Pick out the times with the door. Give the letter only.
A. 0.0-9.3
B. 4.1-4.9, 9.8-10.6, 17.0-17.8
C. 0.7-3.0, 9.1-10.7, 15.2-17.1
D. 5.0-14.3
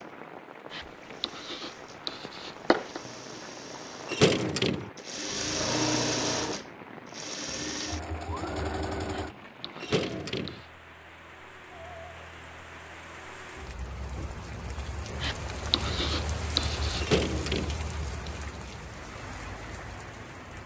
B.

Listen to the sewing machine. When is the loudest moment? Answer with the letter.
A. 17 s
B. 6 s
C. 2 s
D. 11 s
B.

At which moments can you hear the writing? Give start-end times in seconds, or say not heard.
0.7-3.0, 9.1-10.7, 15.2-17.1.